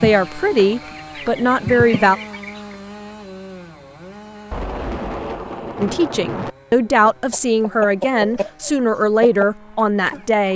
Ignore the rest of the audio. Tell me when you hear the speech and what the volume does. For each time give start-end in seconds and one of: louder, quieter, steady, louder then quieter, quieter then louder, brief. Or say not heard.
0.0-2.1 brief
5.8-10.5 steady.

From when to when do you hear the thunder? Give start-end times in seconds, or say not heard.
4.5-6.5.